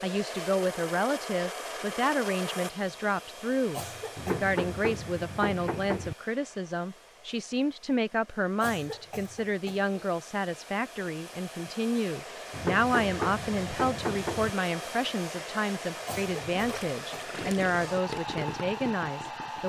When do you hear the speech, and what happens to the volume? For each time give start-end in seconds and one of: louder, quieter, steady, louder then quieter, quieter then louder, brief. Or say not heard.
0.0-19.6 steady.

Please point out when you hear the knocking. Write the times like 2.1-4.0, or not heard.
4.2-6.2, 12.5-14.5.